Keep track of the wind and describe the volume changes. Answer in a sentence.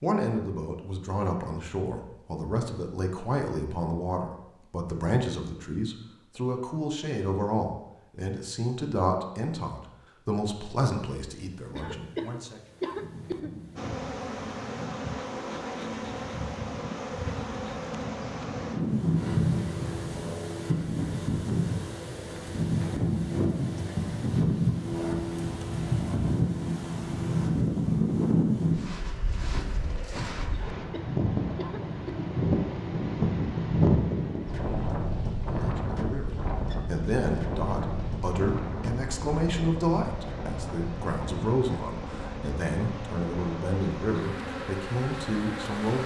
The volume of the wind goes up, then down.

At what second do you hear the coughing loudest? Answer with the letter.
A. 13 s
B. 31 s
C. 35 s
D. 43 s
A.